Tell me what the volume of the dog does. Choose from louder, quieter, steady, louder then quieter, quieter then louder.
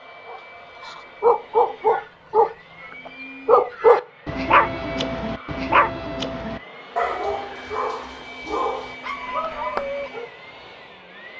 quieter.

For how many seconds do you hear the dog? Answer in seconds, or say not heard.
10 s.